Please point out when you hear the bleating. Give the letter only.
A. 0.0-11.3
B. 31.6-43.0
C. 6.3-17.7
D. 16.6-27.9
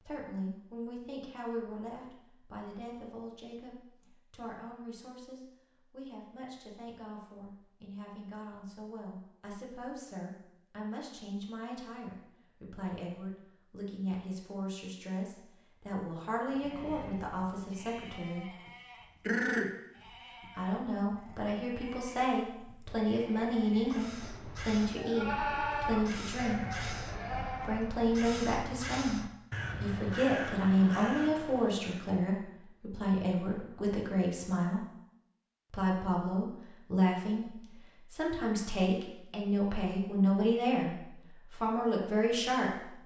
D.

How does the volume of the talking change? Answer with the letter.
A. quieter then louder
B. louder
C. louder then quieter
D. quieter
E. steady
B.